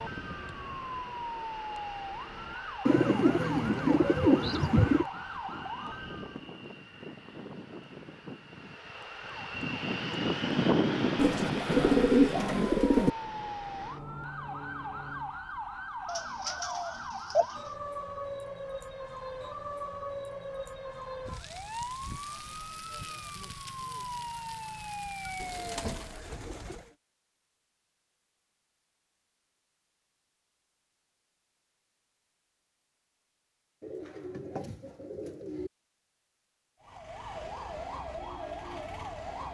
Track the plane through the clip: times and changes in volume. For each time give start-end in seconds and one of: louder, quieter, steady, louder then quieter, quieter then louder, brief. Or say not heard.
0.0-15.4 louder then quieter.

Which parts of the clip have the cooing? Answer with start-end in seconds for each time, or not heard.
2.9-5.0, 11.2-13.1, 16.1-17.6, 25.4-26.9, 33.8-35.7.